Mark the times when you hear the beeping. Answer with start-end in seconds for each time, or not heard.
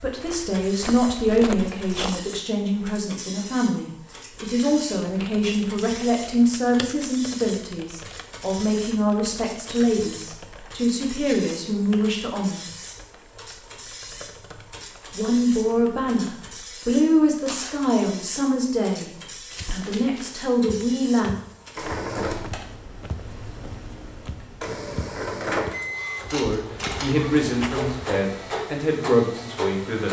25.7-26.2.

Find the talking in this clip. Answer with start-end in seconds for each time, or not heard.
0.0-12.6, 15.1-21.3, 26.2-30.0.